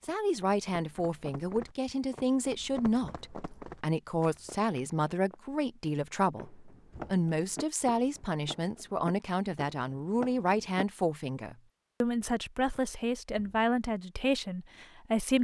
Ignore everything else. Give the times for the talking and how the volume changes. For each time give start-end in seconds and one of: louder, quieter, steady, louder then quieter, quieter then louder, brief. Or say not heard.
0.0-15.3 steady.